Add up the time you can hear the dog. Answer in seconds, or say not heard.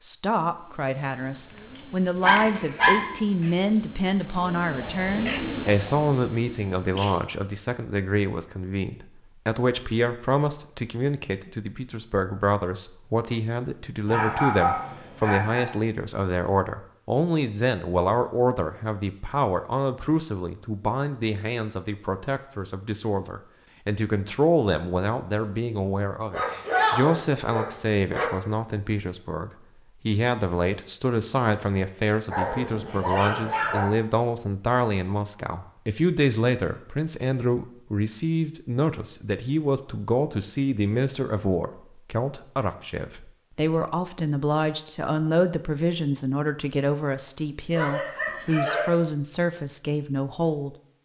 7 s.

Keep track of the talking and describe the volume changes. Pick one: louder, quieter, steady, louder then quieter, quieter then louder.
steady.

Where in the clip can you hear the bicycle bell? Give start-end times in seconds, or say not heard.
not heard.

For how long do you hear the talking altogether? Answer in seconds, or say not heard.
51 s.